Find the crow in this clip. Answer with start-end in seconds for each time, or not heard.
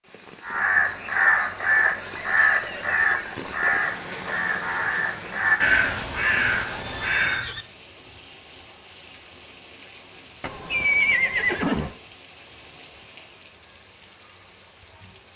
0.4-7.5.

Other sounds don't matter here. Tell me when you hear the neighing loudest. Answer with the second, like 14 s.
11 s.